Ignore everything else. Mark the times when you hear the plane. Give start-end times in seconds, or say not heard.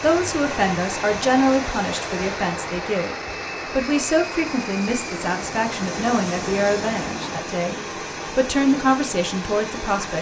0.0-7.3.